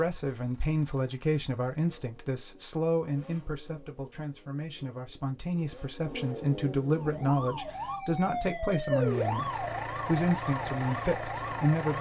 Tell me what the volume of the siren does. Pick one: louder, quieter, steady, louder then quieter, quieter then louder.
louder then quieter.